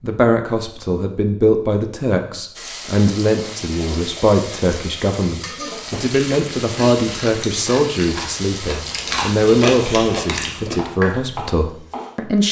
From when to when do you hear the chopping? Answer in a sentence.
You can hear the chopping from 10.8 to 12.1 s.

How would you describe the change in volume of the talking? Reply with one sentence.
The loudness of the talking stays about the same.